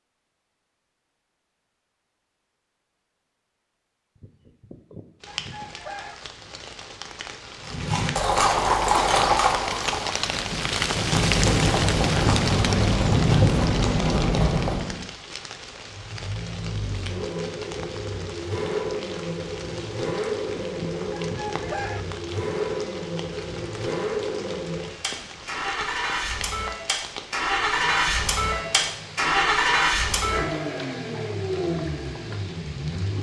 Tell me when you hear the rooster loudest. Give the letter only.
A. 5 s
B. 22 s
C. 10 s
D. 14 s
B.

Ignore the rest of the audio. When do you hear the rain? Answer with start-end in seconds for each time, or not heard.
5.2-33.1.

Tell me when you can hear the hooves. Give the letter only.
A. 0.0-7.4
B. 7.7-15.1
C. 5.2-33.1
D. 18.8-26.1
B.